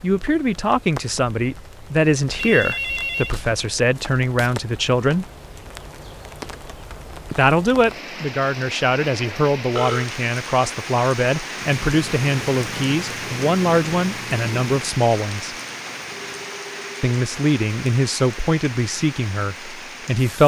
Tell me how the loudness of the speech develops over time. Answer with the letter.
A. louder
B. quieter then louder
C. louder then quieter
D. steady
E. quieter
D.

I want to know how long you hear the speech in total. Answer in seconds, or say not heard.
17 s.